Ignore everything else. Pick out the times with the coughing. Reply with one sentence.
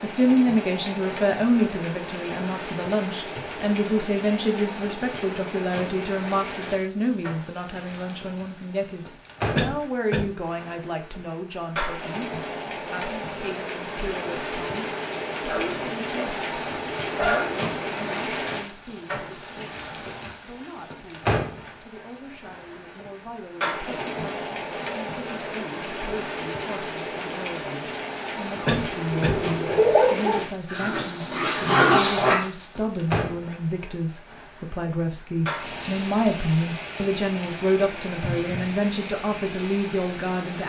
You can hear the coughing from 9.6 to 10.2 s and from 28.6 to 29.4 s.